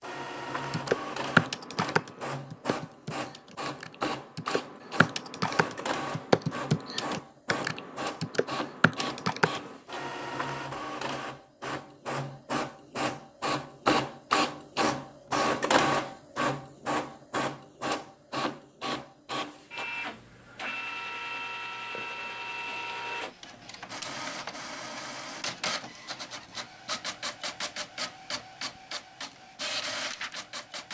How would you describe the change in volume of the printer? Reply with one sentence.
The loudness of the printer goes up, then down.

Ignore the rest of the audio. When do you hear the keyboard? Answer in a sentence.
You can hear the keyboard from 0.7 to 9.8 s.